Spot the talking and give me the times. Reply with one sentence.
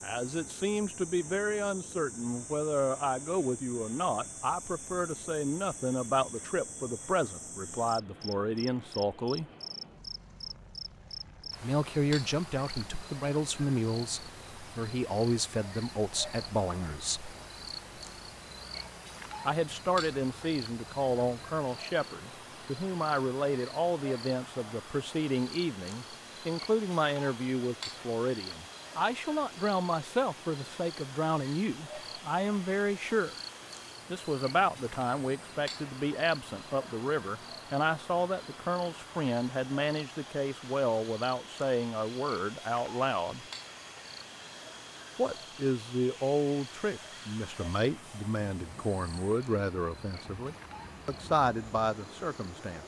The talking can be heard from 0.0 to 9.4 s, from 11.6 to 17.4 s, from 19.4 to 33.4 s, from 34.1 to 43.5 s and from 45.1 to 52.8 s.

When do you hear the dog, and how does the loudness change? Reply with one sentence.
The dog can't be heard in this clip.